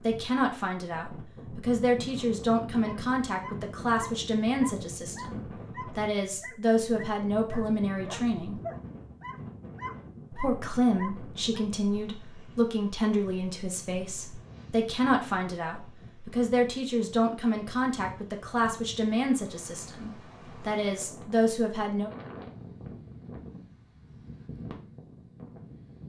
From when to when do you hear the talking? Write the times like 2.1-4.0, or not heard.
0.0-8.6, 10.3-22.1.